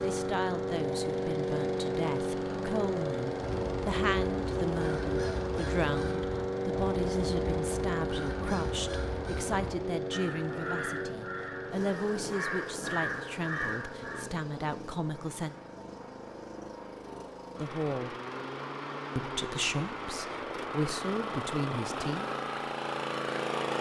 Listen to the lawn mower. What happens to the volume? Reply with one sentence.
The volume of the lawn mower goes down, then up.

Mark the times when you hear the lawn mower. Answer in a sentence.
The lawn mower can be heard from 0.0 to 23.7 s.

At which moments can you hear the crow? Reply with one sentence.
The crow can be heard from 3.4 to 14.2 s.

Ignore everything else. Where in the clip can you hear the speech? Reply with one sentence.
You can hear the speech from 0.0 to 15.6 s, from 17.6 to 18.1 s and from 19.1 to 22.3 s.